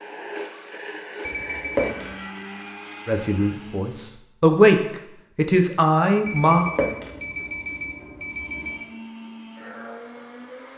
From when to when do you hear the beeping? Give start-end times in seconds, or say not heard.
1.2-2.1, 6.2-8.9.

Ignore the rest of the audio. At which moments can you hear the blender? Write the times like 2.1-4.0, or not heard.
0.0-4.2, 8.2-10.7.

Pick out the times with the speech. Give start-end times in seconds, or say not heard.
3.0-6.7.